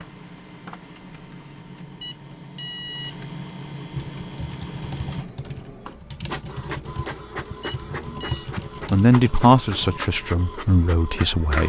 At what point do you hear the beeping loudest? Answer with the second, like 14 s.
3 s.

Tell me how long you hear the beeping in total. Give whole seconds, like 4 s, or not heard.
2 s.